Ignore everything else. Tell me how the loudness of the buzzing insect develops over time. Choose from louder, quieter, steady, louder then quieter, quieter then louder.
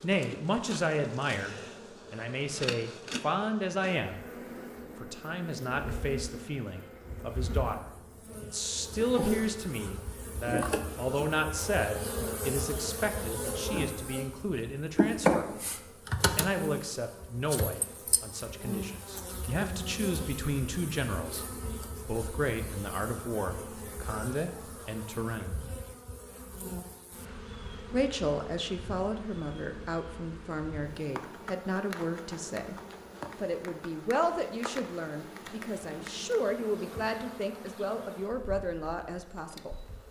louder then quieter.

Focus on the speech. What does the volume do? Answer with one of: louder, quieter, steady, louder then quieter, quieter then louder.
steady.